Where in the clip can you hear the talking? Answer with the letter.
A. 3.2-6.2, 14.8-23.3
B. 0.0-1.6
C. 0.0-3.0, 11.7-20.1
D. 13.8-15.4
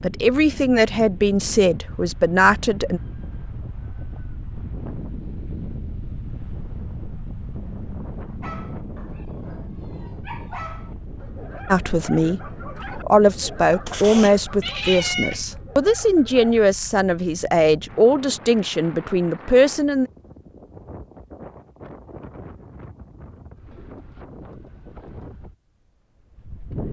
C.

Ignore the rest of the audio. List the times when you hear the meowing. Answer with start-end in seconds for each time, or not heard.
13.8-15.4.